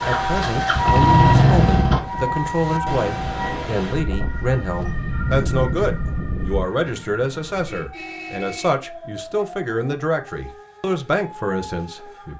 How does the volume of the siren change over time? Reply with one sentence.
The loudness of the siren goes down.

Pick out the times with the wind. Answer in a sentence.
You can hear the wind from 0.0 to 6.7 s.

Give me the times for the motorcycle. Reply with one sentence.
The motorcycle can be heard from 0.0 to 2.0 s.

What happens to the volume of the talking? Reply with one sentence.
The loudness of the talking stays about the same.